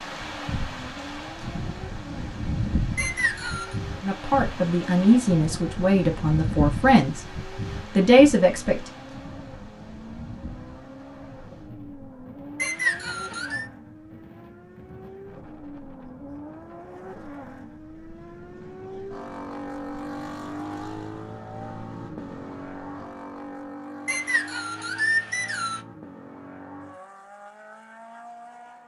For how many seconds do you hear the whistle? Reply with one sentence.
You can hear the whistle for 4 seconds altogether.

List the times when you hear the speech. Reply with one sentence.
The speech can be heard from 4.0 to 7.2 s and from 8.0 to 8.8 s.